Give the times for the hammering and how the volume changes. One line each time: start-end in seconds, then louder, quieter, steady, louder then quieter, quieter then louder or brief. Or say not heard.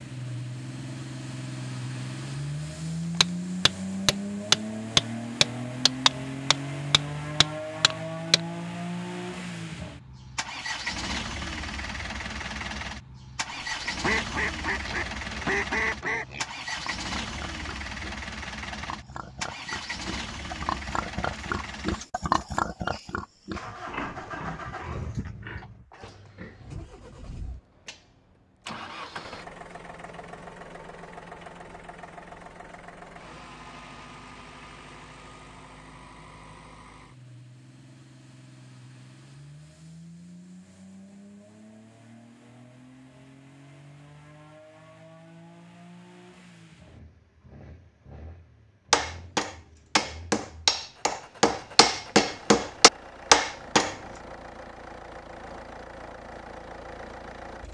3.2-8.4 louder then quieter
48.9-54.0 louder.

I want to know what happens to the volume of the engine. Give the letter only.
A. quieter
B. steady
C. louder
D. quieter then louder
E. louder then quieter
A.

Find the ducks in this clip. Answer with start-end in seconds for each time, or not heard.
13.5-16.2.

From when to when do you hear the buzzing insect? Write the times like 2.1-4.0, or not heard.
not heard.